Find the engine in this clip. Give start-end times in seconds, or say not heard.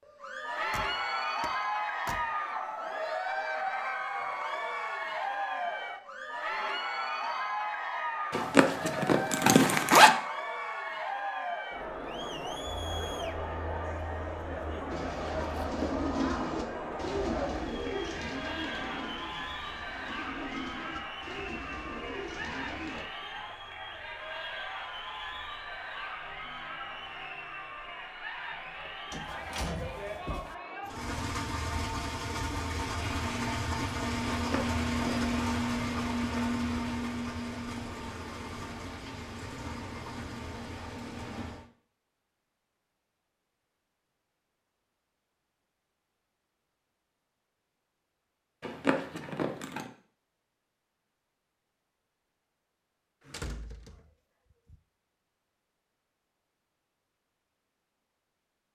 30.9-41.7.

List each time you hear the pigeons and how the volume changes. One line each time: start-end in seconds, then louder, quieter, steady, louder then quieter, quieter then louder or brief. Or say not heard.
14.8-23.1 quieter.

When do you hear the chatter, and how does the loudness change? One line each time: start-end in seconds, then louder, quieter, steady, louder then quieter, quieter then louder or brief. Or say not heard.
0.1-31.1 quieter.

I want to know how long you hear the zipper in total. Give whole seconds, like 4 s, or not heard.
4 s.